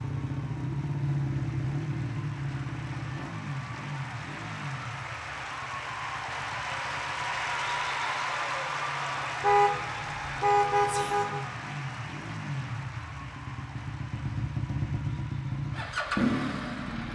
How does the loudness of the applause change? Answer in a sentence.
The volume of the applause goes up, then down.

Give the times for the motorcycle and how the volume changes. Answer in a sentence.
You can hear the motorcycle from 0.0 to 17.0 s, getting quieter then louder.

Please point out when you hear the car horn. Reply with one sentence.
You can hear the car horn from 9.4 to 11.4 s.